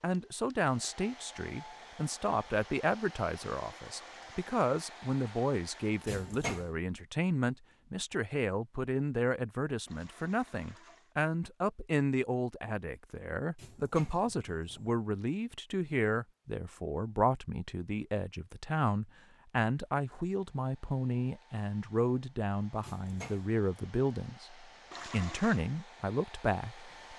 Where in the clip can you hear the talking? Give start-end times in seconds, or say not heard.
0.0-27.1.